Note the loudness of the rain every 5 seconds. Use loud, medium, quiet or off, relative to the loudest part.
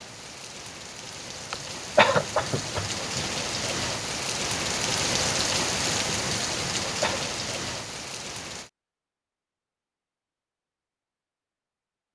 loud, loud, off.